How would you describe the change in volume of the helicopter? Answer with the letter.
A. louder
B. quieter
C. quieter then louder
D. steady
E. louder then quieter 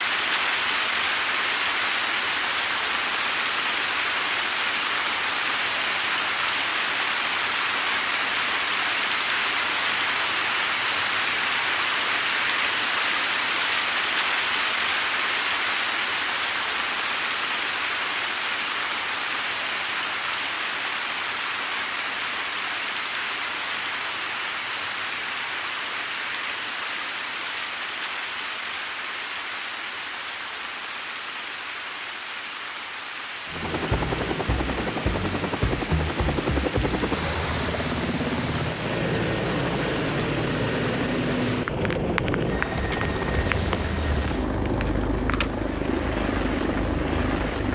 D.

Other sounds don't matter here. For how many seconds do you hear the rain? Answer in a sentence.
You can hear the rain for 48 seconds altogether.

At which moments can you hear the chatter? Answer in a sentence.
The chatter can't be heard in this clip.